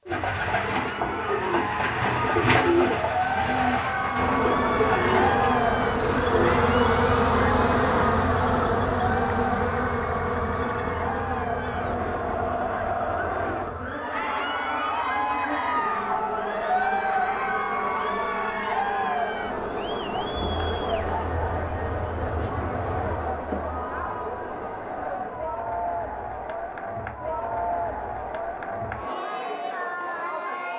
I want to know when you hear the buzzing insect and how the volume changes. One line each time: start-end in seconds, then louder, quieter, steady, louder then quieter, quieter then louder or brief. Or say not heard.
4.2-23.4 quieter.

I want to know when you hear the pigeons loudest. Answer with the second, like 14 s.
3 s.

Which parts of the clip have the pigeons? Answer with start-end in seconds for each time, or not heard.
0.1-6.6.